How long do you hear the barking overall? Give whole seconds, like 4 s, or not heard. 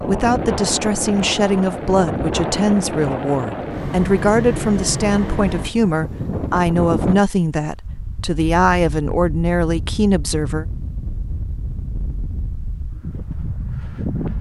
not heard.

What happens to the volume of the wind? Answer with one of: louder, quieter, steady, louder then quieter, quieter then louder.
quieter.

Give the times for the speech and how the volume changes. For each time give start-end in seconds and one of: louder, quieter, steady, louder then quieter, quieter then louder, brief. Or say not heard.
0.0-10.7 steady.